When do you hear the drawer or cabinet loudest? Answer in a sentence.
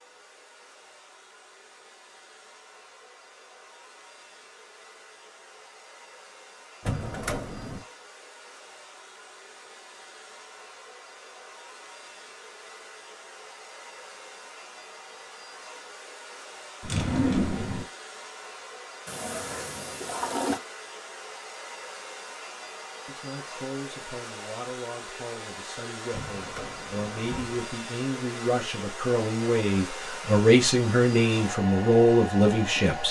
The loudest moment of the drawer or cabinet is at 17 seconds.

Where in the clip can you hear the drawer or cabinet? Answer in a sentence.
You can hear the drawer or cabinet from 6.8 to 7.8 s, from 16.8 to 17.9 s and from 26.1 to 27.6 s.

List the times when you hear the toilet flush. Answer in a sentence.
The toilet flush can be heard from 19.1 to 20.6 s.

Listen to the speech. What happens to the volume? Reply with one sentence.
The volume of the speech goes up.